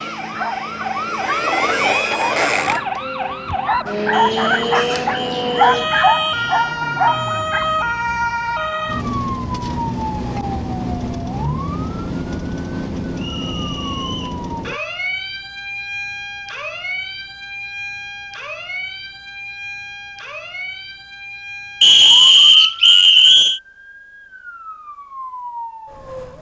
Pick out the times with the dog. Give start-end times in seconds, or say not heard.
0.2-8.0.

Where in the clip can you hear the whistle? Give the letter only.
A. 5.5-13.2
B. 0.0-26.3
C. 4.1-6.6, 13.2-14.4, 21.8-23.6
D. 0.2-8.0
C.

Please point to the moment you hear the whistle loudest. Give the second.
22 s.